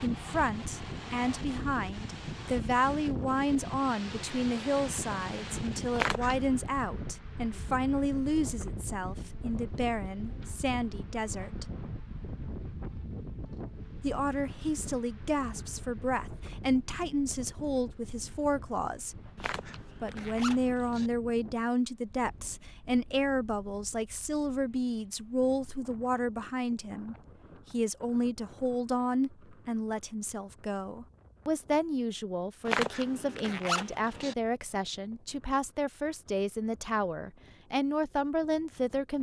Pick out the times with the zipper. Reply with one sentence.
You can hear the zipper from 6.0 to 6.6 s, from 19.4 to 21.1 s and from 32.6 to 34.4 s.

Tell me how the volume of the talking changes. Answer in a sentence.
The volume of the talking stays about the same.